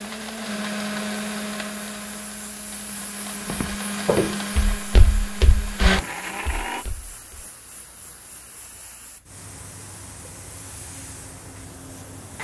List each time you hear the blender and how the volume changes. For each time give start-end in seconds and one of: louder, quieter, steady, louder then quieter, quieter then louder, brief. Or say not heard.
0.0-6.8 quieter then louder.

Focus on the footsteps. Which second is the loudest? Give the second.
4 s.